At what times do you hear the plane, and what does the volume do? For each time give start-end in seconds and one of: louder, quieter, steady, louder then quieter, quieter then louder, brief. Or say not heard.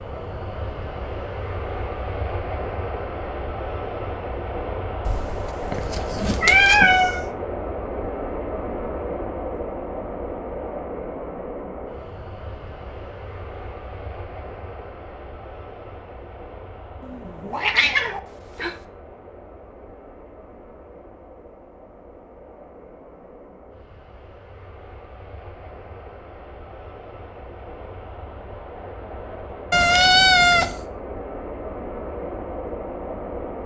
0.0-33.6 quieter then louder.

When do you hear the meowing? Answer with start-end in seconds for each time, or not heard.
5.0-7.2, 17.0-18.8, 29.7-30.9.